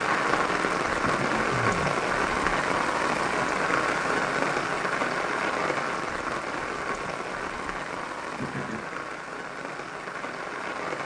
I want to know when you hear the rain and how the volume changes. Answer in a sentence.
The rain can be heard from 0.0 to 11.0 s, getting quieter.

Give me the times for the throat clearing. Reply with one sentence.
You can hear the throat clearing from 1.0 to 2.0 s and from 8.3 to 8.8 s.